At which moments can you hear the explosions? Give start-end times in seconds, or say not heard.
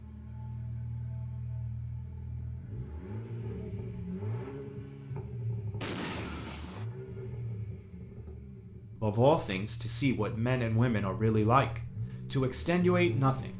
5.8-6.8.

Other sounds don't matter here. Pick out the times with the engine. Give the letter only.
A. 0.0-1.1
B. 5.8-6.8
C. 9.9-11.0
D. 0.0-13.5
D.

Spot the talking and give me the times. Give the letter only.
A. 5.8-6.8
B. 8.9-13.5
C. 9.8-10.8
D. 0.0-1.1
B.